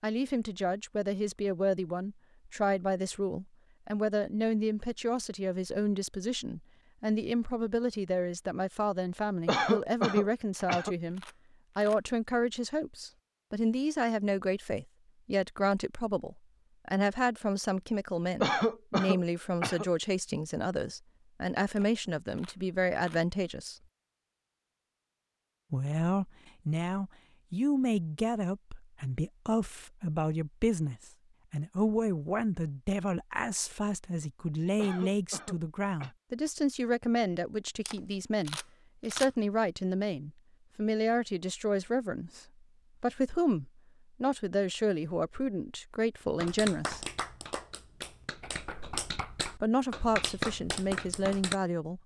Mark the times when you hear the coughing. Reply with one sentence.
You can hear the coughing from 9.4 to 10.9 s, from 18.4 to 19.9 s and from 34.8 to 36.1 s.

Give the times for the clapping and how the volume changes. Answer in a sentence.
You can hear the clapping from 46.4 to 51.5 s, getting quieter then louder.